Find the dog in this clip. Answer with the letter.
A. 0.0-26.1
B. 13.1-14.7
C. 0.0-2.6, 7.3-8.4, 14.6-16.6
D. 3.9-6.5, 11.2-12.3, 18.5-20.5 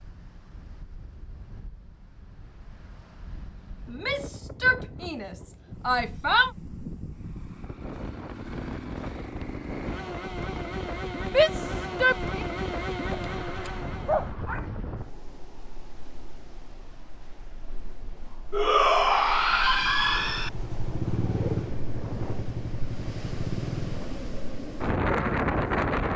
B.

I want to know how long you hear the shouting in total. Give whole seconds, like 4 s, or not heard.
6 s.